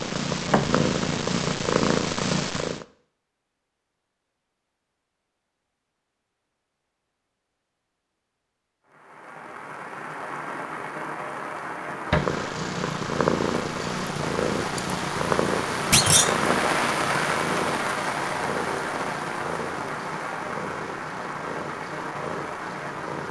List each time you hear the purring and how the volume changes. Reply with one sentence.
You can hear the purring briefly from 0.0 to 2.9 s; and from 12.1 to 23.2 s, getting quieter.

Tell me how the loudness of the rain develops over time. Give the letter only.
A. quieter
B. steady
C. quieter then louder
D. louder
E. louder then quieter
E.